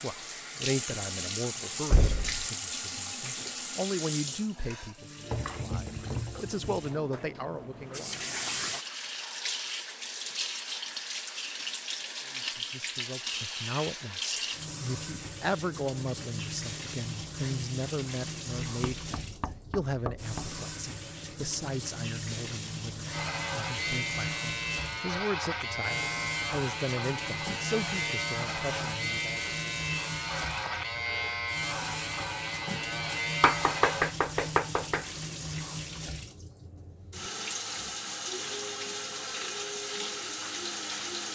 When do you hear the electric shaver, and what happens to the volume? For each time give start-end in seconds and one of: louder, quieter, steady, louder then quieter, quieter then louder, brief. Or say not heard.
23.1-34.1 steady.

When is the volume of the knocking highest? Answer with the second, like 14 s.
34 s.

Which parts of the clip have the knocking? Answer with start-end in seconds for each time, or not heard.
1.9-2.5, 18.6-20.6, 33.4-35.0.